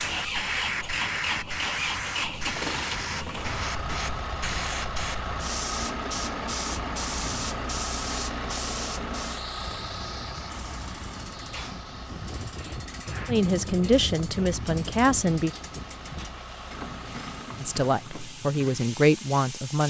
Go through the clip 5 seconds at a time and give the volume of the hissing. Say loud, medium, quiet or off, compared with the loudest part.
loud, loud, quiet, medium.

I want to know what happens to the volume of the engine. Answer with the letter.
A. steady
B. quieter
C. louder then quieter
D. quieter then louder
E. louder
B.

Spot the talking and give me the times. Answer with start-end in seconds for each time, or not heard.
13.2-15.5, 17.6-19.8.